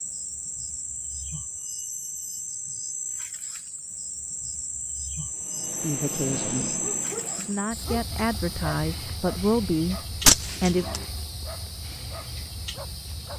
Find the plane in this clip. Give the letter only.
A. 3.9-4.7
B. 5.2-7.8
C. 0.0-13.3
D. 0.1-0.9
B.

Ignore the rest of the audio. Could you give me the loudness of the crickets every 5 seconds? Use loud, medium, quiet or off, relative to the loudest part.
loud, loud, medium.